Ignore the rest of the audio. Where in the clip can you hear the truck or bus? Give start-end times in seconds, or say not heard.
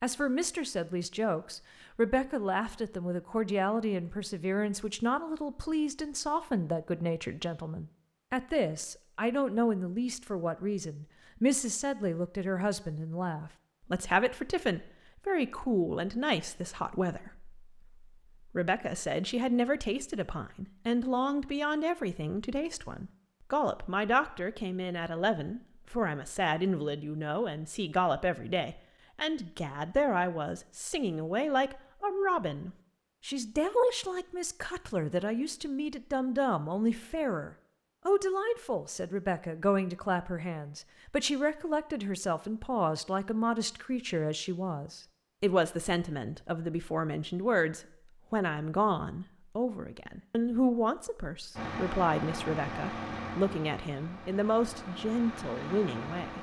51.5-56.3.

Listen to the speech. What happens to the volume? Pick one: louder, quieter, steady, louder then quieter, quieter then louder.
steady.